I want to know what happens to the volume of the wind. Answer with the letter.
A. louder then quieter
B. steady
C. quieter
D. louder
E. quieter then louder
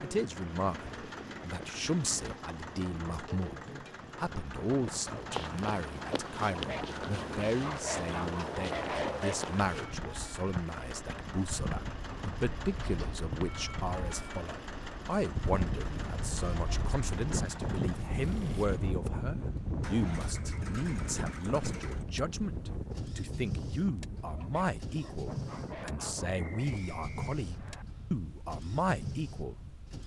A.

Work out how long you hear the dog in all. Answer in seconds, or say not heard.
5 s.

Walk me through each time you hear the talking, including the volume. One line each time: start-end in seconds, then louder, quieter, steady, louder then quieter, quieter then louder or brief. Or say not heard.
0.0-30.0 steady.